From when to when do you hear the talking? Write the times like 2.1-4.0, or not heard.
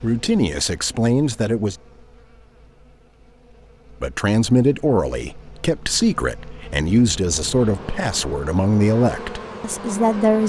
0.0-1.8, 4.0-10.4.